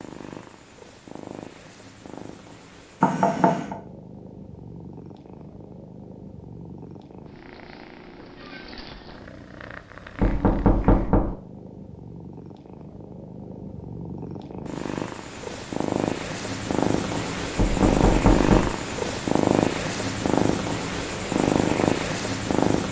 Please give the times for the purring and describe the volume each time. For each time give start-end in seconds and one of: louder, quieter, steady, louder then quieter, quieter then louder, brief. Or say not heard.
0.0-22.8 louder.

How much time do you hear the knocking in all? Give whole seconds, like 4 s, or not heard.
3 s.